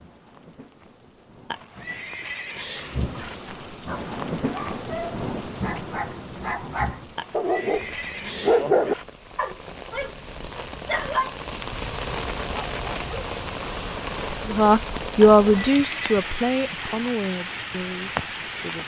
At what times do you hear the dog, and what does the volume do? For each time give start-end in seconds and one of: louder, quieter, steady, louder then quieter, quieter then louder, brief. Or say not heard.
3.9-13.3 louder then quieter.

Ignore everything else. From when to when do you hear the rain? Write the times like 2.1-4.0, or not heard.
0.0-18.8.